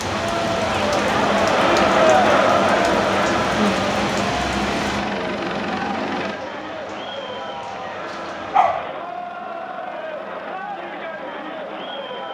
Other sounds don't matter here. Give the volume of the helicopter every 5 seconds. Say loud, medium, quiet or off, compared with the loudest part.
loud, medium, quiet.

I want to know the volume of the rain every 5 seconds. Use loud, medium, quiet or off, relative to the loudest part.
loud, quiet, off.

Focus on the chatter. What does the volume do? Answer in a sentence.
The volume of the chatter goes down.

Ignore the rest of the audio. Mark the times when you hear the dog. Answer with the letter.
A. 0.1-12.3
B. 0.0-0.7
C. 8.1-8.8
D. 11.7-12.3
C.